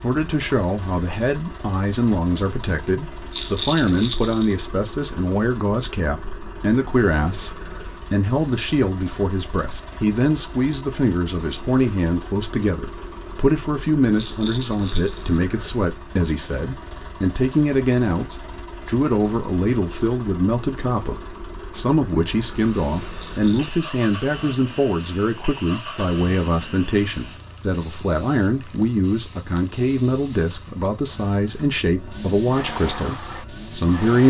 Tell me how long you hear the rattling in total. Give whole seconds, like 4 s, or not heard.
3 s.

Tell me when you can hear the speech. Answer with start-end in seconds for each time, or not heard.
0.0-34.2.